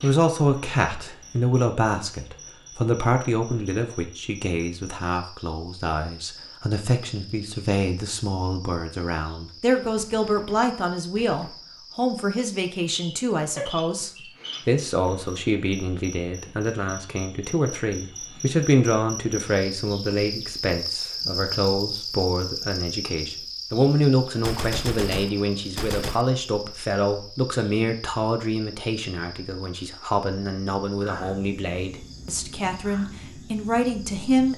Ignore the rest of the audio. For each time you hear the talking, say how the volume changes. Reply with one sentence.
The talking can be heard from 0.0 to 34.5 s, at a steady volume.